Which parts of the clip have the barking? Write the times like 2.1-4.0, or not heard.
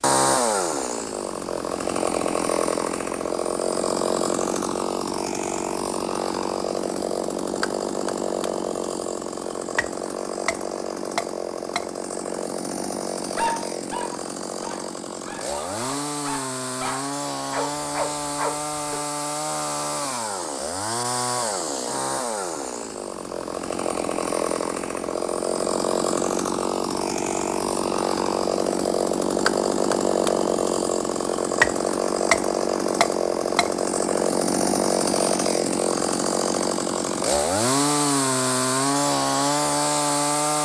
13.3-19.0.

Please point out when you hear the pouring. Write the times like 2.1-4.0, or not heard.
not heard.